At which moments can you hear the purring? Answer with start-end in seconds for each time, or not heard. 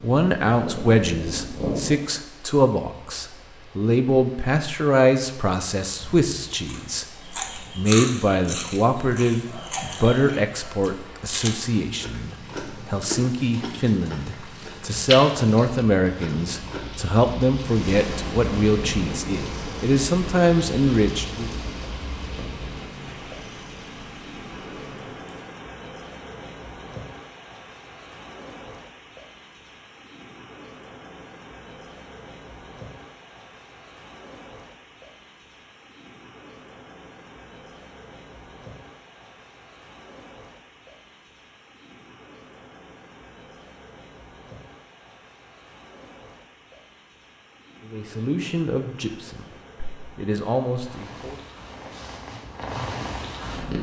0.0-2.1, 17.4-25.4, 50.7-53.7.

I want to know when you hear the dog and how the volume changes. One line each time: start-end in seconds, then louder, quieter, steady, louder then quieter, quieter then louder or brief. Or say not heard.
not heard.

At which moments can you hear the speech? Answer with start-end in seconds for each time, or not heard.
0.0-21.5, 47.8-51.4.